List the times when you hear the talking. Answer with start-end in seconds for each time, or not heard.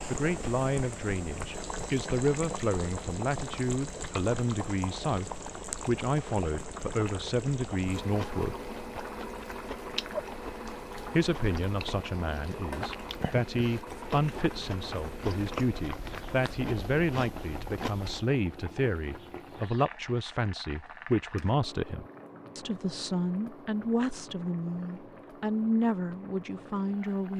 0.1-8.7, 11.1-27.3.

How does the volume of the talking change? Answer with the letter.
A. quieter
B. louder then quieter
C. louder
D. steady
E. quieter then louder
D.